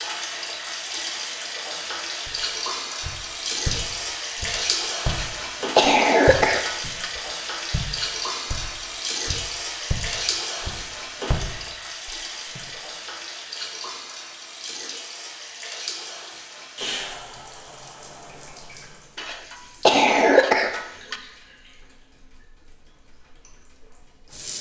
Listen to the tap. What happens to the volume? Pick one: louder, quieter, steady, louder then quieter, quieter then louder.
quieter.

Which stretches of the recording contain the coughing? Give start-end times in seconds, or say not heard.
5.0-7.1, 19.1-21.1.